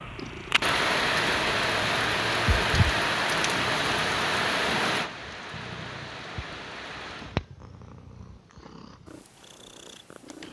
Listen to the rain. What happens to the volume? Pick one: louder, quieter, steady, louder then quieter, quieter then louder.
quieter.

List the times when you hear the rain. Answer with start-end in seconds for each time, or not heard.
0.0-7.4.